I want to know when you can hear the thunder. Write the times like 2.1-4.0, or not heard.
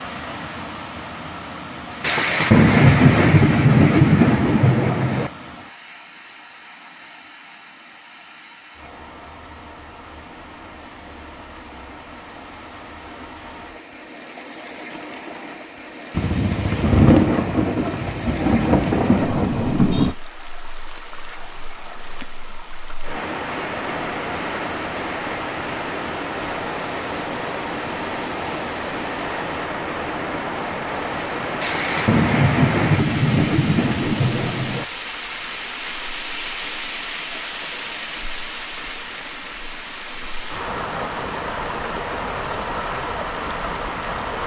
2.0-5.3, 16.1-20.1, 31.6-34.9.